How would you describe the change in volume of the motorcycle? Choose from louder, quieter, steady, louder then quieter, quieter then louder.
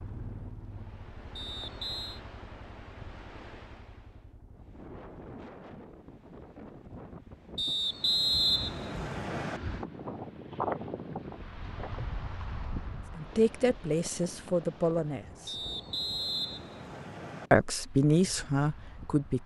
quieter.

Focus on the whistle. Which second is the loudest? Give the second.
8 s.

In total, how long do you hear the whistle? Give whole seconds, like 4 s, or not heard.
5 s.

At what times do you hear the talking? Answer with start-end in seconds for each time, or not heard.
13.2-15.6, 17.5-19.4.